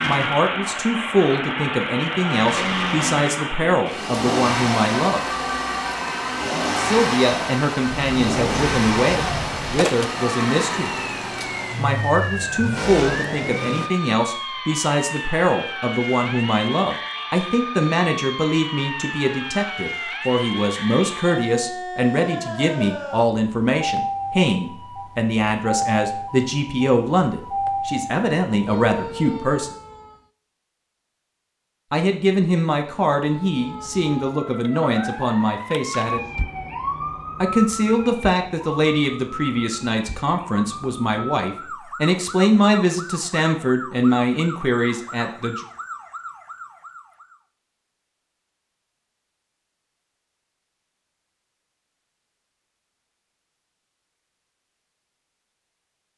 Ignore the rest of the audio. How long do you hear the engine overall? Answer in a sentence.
The engine can be heard for 14 seconds in total.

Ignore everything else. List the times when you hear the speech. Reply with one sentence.
The speech can be heard from 0.1 to 5.2 s, from 6.8 to 10.9 s, from 11.8 to 29.7 s, from 31.9 to 36.2 s and from 37.4 to 45.6 s.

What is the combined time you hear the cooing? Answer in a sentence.
The cooing can't be heard in this clip.